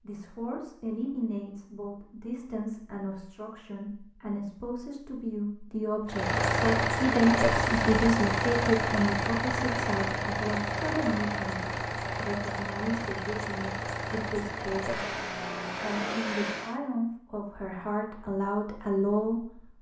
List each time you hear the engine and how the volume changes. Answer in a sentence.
You can hear the engine from 6.0 to 16.8 s, getting quieter.